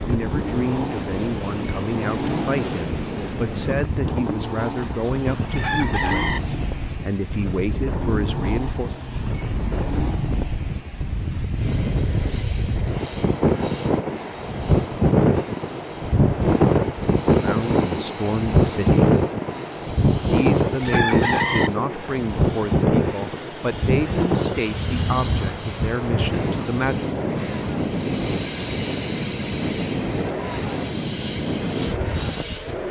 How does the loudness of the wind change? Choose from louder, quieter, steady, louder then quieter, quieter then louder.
louder then quieter.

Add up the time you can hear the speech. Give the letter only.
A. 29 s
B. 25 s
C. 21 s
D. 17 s
D.